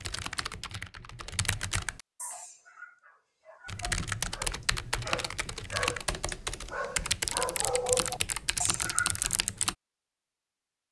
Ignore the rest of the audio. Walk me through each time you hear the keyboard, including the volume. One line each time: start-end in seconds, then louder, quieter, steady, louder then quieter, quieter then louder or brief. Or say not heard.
0.0-2.0 brief
3.6-9.8 steady.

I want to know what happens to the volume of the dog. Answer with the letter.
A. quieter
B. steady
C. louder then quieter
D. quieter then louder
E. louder
E.